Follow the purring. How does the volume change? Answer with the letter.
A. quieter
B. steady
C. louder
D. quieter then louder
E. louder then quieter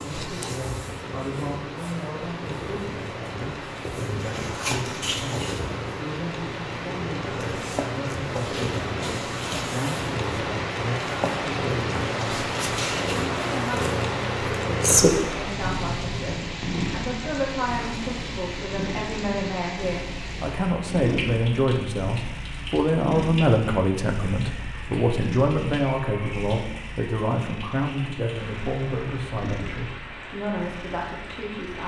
E.